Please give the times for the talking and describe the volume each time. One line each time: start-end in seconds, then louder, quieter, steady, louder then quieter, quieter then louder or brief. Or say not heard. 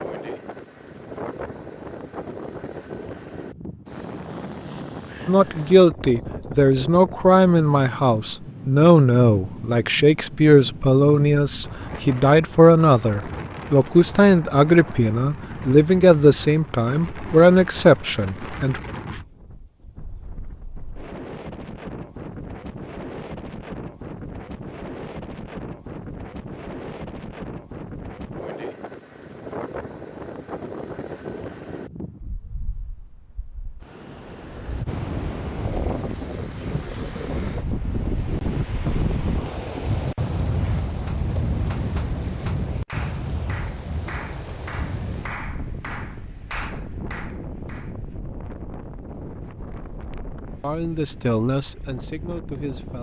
5.2-18.8 steady
50.6-52.9 brief.